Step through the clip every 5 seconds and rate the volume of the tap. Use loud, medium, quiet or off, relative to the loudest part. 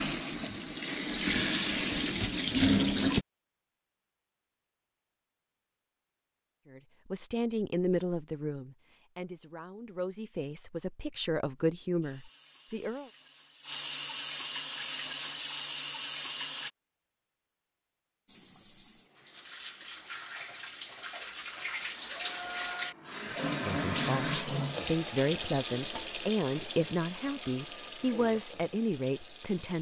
loud, off, medium, medium, medium, medium.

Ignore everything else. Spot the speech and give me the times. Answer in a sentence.
The speech can be heard from 6.7 to 13.1 s and from 23.3 to 29.7 s.